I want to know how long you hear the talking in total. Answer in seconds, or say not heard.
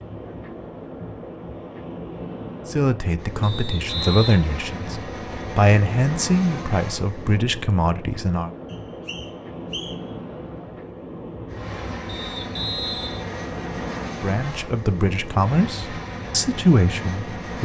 9 s.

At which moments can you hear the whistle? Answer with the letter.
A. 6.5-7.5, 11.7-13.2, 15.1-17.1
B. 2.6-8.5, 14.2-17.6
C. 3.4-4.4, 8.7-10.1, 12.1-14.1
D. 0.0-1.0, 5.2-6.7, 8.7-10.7
C.